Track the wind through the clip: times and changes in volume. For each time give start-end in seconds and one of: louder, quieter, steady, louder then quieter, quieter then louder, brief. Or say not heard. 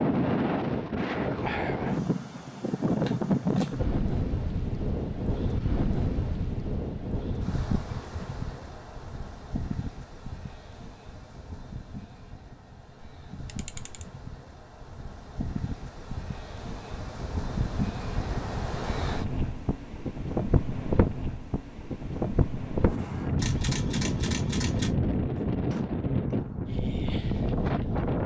0.0-28.2 quieter then louder.